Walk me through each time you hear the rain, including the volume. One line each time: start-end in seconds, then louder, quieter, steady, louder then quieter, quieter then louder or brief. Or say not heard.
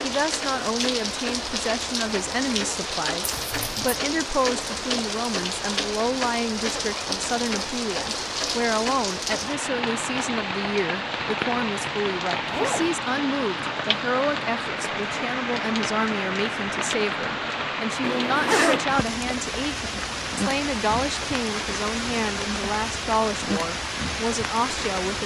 0.0-25.2 steady.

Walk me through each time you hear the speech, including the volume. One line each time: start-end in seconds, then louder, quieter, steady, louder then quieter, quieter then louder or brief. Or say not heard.
0.0-25.2 steady.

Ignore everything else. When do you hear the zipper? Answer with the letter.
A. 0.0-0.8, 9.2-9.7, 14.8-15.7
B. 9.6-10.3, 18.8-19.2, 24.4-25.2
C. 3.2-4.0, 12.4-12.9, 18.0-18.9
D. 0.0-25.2
C.